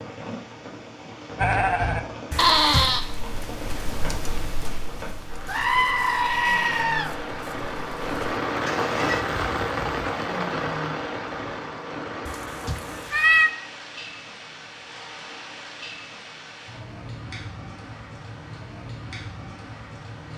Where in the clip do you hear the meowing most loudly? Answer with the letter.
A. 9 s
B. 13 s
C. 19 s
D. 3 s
B.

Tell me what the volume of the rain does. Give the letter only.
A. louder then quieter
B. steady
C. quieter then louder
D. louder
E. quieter
A.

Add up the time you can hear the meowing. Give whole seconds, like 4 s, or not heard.
2 s.